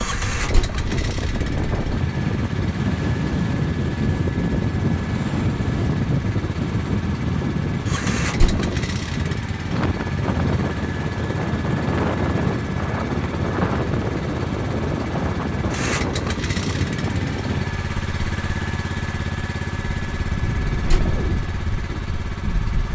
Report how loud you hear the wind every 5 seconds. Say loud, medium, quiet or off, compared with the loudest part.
loud, loud, loud, loud, medium.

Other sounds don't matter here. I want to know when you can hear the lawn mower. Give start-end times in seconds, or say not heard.
0.0-22.9.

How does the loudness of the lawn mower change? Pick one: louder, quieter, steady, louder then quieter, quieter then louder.
steady.